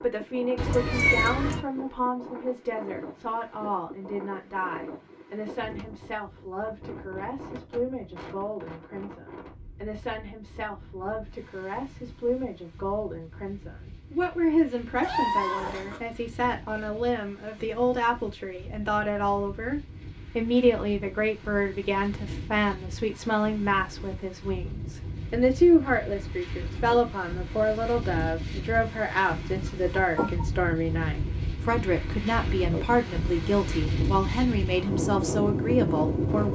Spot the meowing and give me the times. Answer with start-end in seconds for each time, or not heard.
0.6-1.6, 15.0-16.0, 29.6-30.4.